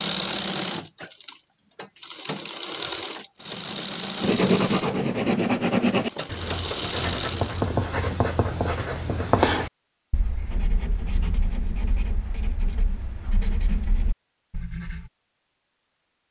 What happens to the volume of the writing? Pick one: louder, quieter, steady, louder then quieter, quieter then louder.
quieter.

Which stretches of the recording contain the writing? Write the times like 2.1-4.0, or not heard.
4.2-15.1.